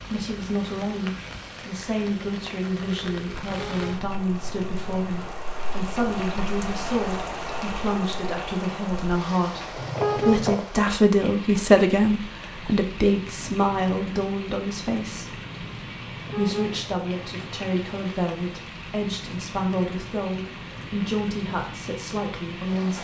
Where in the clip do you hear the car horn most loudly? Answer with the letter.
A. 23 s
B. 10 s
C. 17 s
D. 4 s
B.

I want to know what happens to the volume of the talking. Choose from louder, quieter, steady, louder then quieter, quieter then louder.
louder then quieter.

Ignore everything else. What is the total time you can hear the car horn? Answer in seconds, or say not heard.
5 s.